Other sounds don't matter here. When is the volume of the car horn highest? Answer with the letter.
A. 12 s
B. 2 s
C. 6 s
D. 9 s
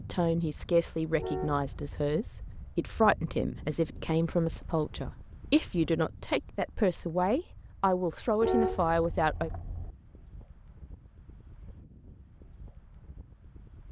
D.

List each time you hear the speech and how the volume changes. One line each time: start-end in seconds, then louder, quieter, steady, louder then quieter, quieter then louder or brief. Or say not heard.
0.0-9.5 steady.